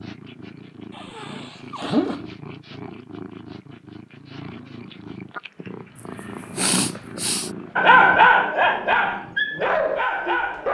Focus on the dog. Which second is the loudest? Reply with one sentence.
The loudest moment of the dog is at 8 seconds.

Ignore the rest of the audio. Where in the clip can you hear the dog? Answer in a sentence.
The dog can be heard from 7.8 to 10.6 s.